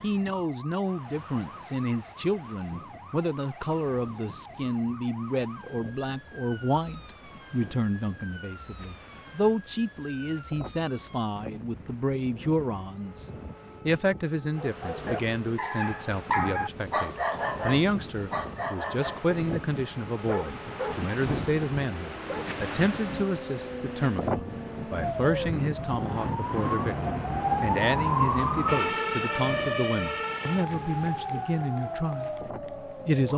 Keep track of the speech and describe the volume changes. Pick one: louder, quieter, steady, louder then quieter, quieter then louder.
steady.